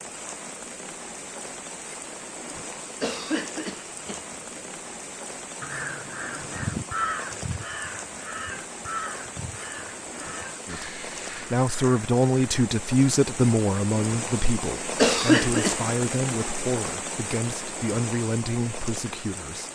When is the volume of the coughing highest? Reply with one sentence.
The loudest moment of the coughing is at 15 seconds.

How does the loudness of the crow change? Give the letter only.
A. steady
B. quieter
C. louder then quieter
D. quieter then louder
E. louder
B.